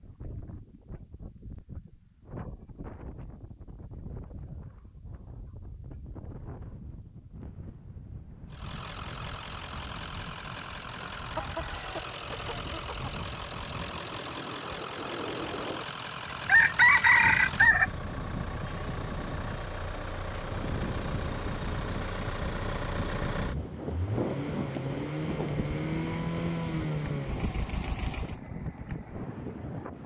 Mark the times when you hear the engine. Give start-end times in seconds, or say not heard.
8.5-28.4.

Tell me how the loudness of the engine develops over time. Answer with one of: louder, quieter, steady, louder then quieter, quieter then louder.
louder.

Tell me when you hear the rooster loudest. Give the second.
17 s.